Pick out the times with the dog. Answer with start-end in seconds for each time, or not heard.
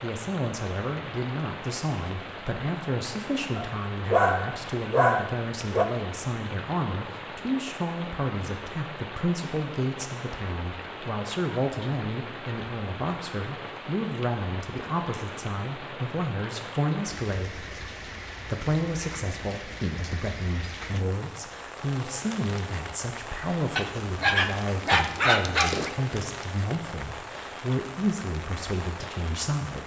3.5-5.8, 23.8-25.9.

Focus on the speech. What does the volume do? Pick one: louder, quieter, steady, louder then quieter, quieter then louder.
steady.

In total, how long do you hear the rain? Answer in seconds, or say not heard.
30 s.